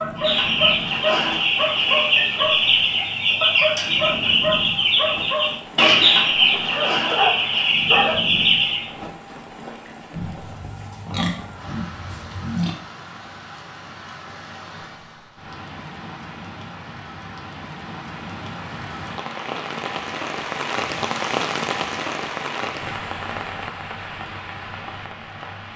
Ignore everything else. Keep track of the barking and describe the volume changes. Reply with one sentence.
The volume of the barking stays about the same.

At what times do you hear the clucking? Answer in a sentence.
You can hear the clucking from 0.1 to 8.9 s.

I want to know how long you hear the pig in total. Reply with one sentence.
The pig can be heard for 3 seconds in total.